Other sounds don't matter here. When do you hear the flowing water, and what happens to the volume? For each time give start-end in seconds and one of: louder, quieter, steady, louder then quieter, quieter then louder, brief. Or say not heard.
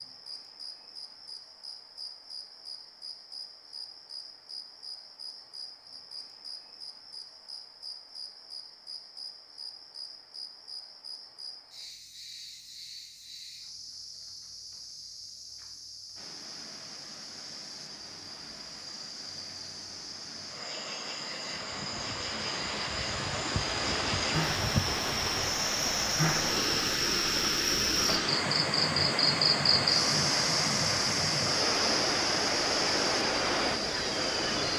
16.1-34.7 louder.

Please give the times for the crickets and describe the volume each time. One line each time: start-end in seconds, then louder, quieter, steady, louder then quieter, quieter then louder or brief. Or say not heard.
0.0-34.7 louder.